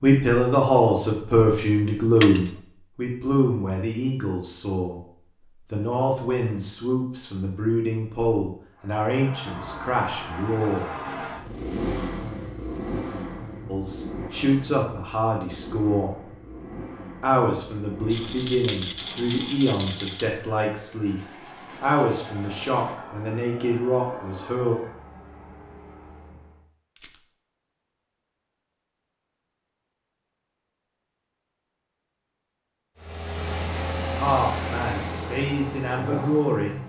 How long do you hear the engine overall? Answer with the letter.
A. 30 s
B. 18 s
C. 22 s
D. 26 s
C.